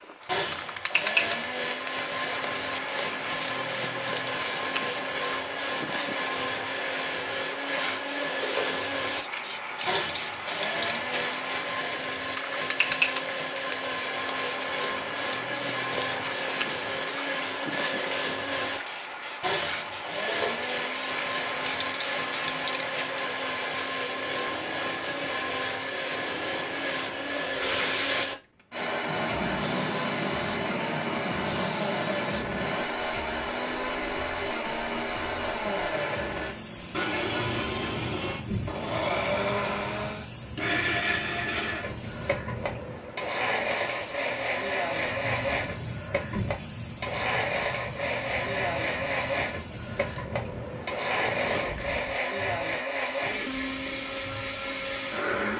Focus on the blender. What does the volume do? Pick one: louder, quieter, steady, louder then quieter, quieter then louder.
steady.